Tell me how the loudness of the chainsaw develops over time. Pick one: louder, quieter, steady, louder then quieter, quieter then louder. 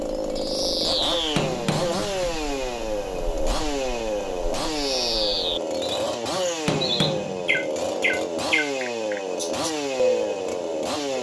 steady.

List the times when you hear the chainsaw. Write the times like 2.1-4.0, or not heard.
0.0-11.1.